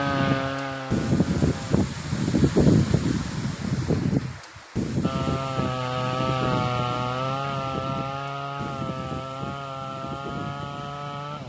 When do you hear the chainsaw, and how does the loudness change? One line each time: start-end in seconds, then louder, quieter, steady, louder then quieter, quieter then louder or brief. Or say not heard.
0.0-1.8 brief
5.0-11.4 quieter.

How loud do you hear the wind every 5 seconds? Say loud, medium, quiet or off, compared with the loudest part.
loud, medium, quiet.